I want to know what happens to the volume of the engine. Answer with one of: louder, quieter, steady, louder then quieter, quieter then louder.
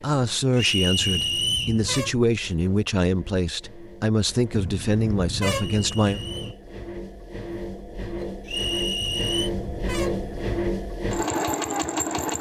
louder.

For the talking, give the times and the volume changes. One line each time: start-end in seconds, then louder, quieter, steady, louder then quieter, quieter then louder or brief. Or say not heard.
0.0-6.2 steady.